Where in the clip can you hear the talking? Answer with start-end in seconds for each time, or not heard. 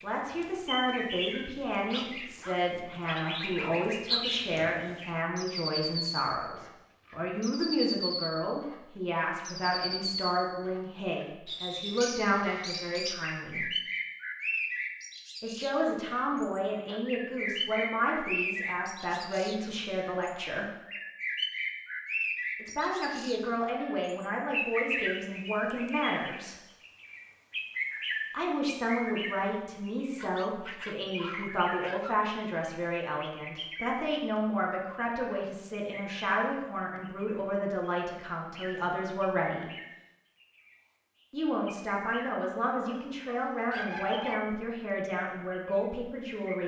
0.0-13.7, 15.4-20.7, 22.6-26.6, 28.3-39.7, 41.3-46.6.